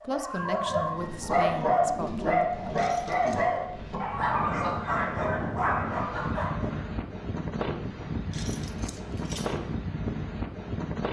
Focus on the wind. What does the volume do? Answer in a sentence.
The loudness of the wind goes up.